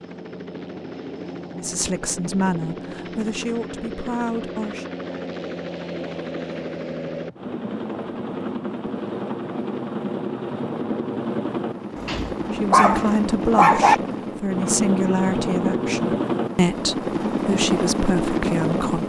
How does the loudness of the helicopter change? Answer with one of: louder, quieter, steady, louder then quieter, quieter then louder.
louder.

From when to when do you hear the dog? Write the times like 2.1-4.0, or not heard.
12.0-13.9.